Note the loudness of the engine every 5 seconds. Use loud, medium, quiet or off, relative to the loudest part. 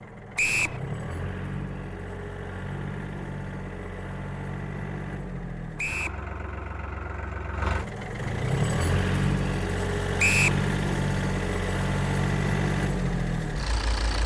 medium, loud, loud.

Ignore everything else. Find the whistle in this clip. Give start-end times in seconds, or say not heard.
0.3-0.8, 5.8-6.2, 10.2-10.6.